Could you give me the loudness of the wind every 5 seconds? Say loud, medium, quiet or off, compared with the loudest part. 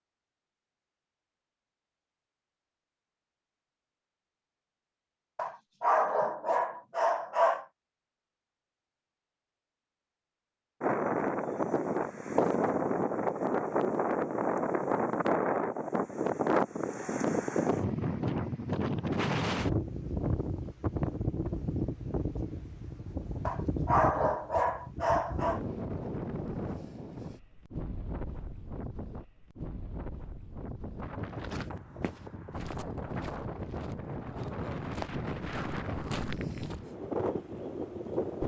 off, off, loud, loud, medium, medium, medium, medium.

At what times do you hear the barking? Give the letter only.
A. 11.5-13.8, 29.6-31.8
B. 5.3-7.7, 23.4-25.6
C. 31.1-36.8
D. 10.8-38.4
B.